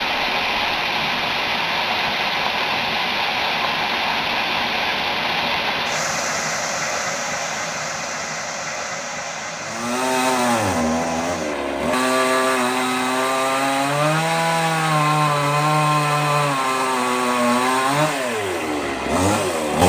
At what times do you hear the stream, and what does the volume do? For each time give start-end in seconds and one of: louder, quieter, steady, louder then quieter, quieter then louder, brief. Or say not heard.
0.0-19.8 quieter.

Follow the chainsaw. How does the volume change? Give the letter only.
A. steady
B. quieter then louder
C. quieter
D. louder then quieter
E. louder
A.